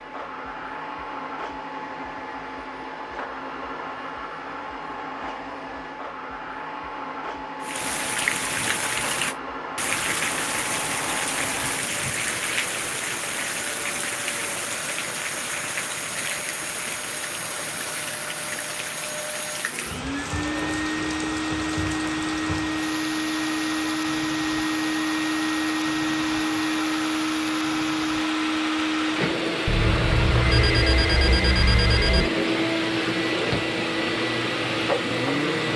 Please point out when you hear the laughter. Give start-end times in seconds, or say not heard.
not heard.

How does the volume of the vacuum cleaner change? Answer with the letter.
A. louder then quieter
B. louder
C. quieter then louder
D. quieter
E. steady
B.